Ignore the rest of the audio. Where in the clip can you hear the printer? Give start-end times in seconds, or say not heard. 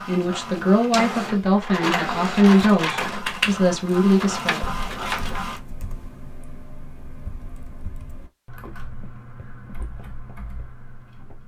0.0-5.6.